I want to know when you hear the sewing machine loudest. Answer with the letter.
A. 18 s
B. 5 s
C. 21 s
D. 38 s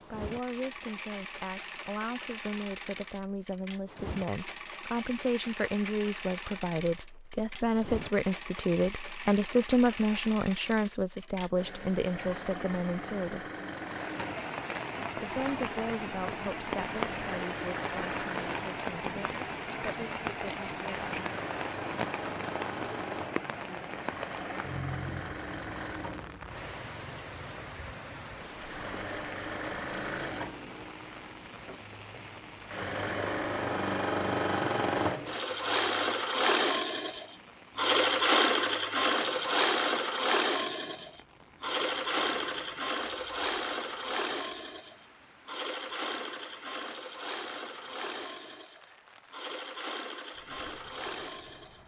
D.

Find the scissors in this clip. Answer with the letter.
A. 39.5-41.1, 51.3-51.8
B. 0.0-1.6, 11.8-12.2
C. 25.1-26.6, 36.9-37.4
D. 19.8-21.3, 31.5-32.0
D.